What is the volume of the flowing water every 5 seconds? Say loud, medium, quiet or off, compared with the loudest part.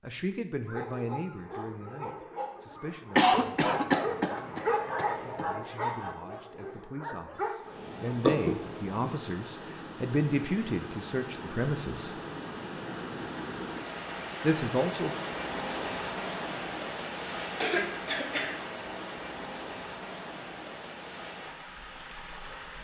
off, medium, loud, loud, medium.